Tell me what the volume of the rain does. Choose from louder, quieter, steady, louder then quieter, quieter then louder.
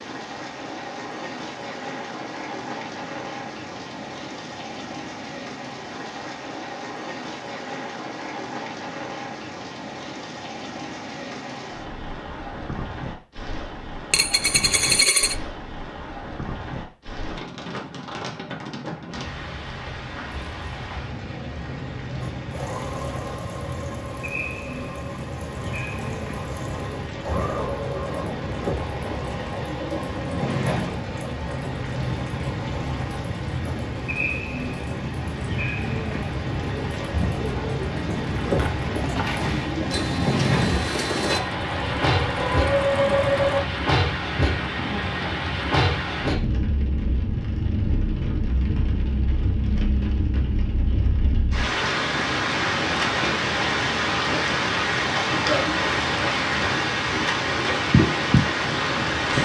louder.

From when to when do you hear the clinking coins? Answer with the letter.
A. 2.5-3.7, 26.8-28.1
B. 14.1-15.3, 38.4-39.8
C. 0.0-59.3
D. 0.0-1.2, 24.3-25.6
B.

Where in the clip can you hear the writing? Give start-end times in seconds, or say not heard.
not heard.